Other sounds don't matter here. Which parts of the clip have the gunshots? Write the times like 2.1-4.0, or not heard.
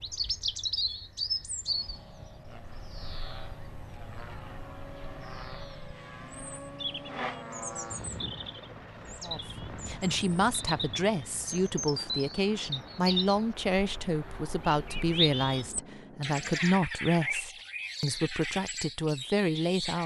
not heard.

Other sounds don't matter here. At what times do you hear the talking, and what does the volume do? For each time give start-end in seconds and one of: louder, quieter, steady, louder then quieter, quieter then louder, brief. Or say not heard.
9.2-20.0 steady.